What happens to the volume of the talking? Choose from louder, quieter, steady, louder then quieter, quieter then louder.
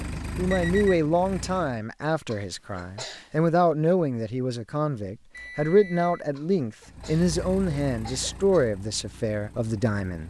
steady.